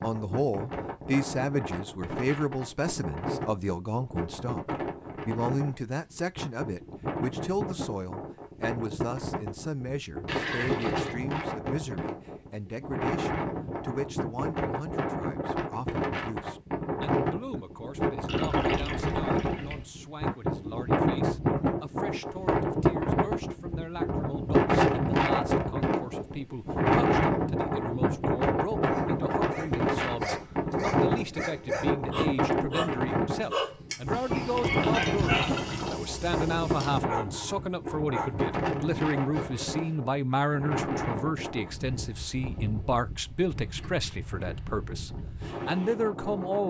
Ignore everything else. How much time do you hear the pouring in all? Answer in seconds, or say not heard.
4 s.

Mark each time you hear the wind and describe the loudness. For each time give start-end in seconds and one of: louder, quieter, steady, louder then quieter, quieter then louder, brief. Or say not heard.
0.0-46.6 louder then quieter.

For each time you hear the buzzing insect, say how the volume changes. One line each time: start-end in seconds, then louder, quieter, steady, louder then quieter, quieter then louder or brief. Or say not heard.
not heard.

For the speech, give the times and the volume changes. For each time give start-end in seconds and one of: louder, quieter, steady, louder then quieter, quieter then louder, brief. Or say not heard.
0.0-46.6 quieter then louder.